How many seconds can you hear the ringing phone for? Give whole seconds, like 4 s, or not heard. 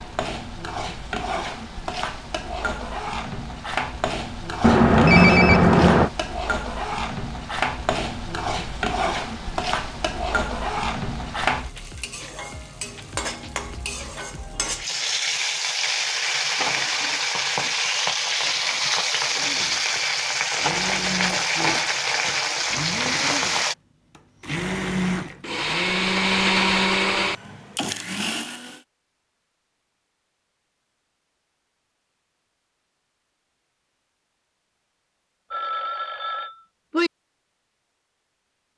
3 s.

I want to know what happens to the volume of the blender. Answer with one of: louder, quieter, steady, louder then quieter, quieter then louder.
louder.